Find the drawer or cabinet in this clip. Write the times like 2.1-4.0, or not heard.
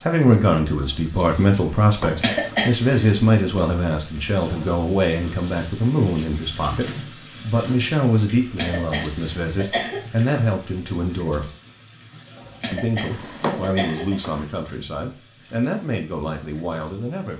1.8-2.4, 13.1-14.4.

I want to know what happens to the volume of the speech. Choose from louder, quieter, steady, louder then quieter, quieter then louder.
quieter.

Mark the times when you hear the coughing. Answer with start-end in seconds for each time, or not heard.
2.0-3.1, 8.4-10.0, 12.4-14.2.